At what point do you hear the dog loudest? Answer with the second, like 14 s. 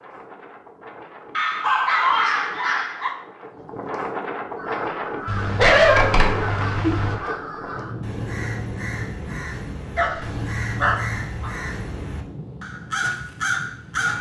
6 s.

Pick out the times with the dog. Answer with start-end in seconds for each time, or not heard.
1.4-3.1, 5.2-7.2, 9.9-11.5.